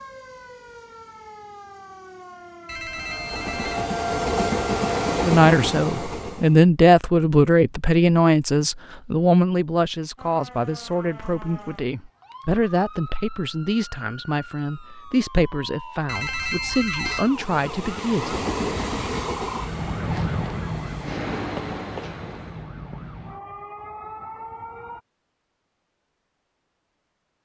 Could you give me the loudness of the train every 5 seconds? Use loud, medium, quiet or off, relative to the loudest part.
loud, loud, off, medium, medium, off.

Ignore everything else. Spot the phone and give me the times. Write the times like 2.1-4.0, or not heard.
2.6-3.9, 16.1-17.3.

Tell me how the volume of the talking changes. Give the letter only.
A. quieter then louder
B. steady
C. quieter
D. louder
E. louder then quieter
C.